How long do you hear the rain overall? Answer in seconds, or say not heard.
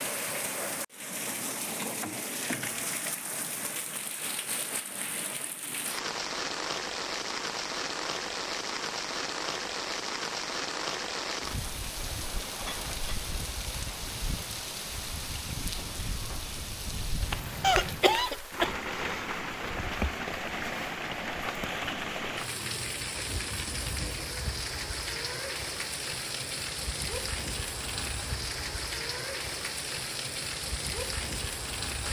32 s.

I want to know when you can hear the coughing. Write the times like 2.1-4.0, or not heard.
17.6-18.7.